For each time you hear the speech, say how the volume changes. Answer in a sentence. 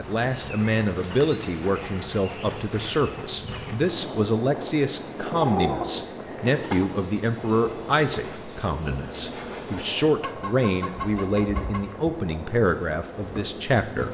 The speech can be heard from 0.0 to 14.0 s, at a steady volume.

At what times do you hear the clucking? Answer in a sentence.
The clucking can be heard from 1.1 to 2.8 s, from 5.3 to 6.9 s and from 10.2 to 11.8 s.